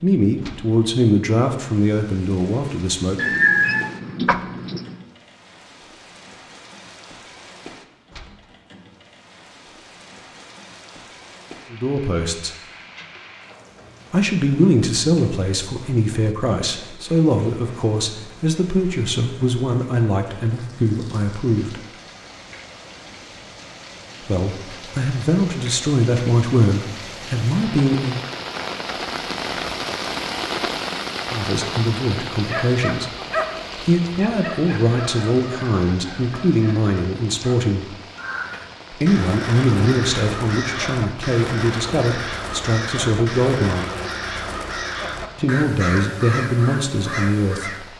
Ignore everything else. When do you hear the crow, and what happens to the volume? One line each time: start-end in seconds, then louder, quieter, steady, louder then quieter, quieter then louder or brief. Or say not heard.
38.1-47.9 steady.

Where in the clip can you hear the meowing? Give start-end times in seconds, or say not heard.
3.1-5.0.